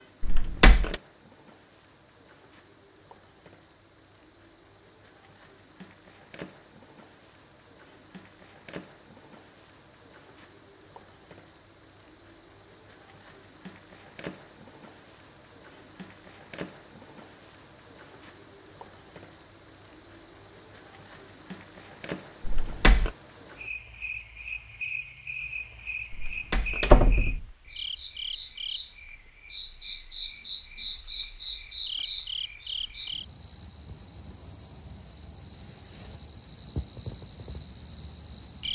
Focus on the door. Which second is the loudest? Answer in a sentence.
The volume of the door peaks at 27 seconds.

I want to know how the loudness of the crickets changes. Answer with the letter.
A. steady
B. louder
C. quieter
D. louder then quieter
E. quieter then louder
B.